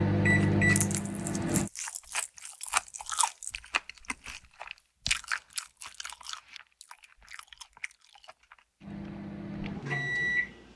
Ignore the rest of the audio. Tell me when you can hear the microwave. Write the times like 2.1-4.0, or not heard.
0.0-1.7, 8.8-10.7.